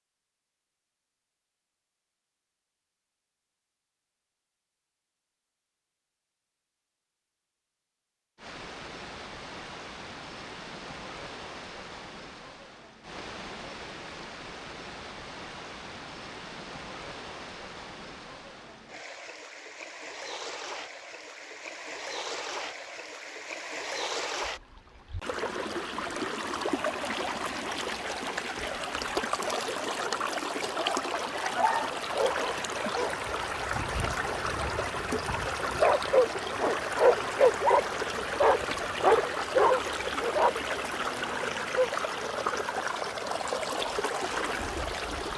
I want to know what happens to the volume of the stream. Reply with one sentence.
The volume of the stream goes up.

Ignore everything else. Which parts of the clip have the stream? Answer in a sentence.
You can hear the stream from 8.3 to 45.3 s.